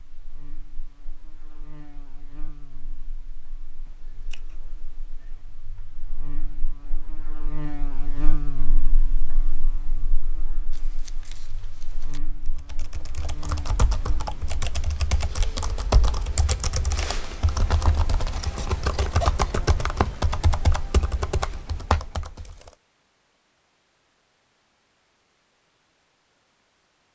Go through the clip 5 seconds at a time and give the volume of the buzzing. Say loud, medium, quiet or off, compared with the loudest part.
quiet, loud, medium, off, off, off.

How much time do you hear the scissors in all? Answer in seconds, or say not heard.
4 s.